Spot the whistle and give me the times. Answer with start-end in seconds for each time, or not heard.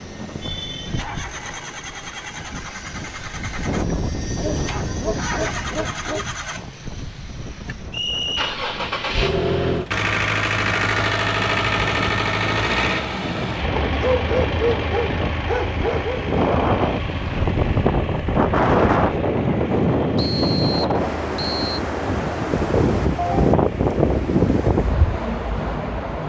7.9-8.6, 20.1-21.8.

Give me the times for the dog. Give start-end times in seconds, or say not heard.
4.3-6.2, 13.8-16.4.